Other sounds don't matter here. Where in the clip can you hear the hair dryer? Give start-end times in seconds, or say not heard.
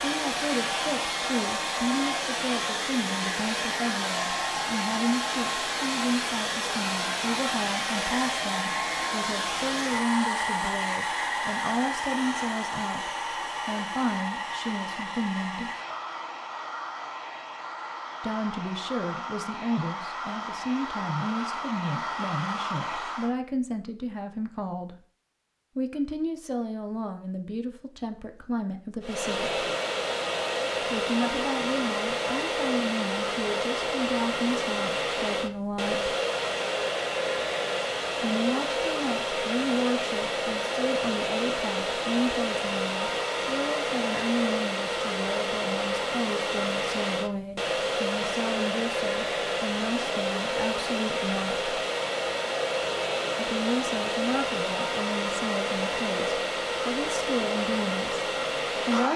0.0-23.4, 29.0-59.1.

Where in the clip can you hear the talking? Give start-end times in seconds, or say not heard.
0.0-15.7, 18.2-24.9, 25.8-29.7, 30.8-36.1, 38.2-51.8, 53.4-59.1.